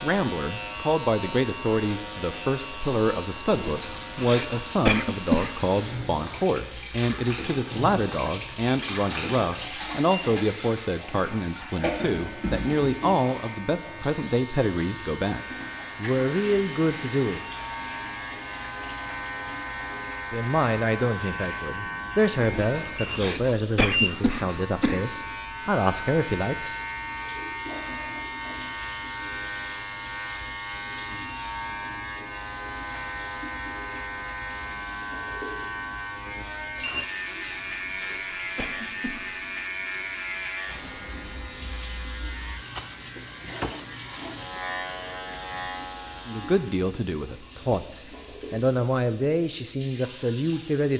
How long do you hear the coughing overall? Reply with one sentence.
The coughing can be heard for 7 seconds in total.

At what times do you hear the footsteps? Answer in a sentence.
You can't hear the footsteps here.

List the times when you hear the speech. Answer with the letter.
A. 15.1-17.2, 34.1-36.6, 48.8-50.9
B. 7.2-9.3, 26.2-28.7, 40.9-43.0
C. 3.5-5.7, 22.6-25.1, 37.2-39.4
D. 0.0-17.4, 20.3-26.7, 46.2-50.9
D.